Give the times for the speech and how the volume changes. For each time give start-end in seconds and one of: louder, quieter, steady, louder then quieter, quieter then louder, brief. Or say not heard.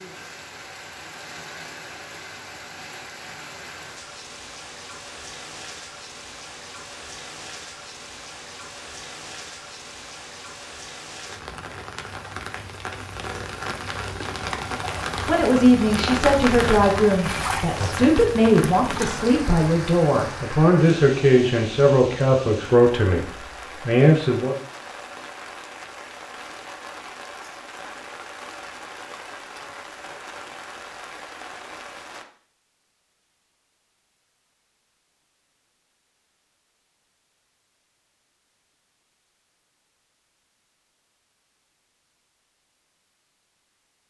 15.2-24.6 steady.